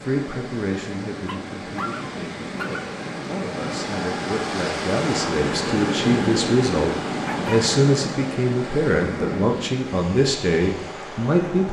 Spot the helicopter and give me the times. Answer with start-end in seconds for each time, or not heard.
not heard.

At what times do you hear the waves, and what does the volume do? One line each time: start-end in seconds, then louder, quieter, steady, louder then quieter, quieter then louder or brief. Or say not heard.
0.0-11.6 louder then quieter.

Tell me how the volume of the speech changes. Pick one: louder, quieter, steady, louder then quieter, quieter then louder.
louder.